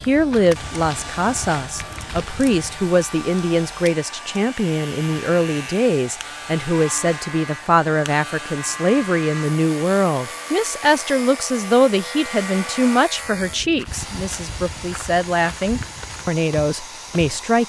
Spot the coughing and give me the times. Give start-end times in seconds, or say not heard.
not heard.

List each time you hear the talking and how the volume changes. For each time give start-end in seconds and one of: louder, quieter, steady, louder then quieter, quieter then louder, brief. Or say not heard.
0.1-17.6 steady.